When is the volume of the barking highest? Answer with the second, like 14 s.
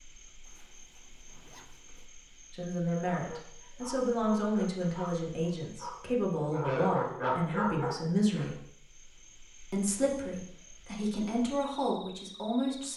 7 s.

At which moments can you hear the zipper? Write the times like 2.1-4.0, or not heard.
0.4-2.0.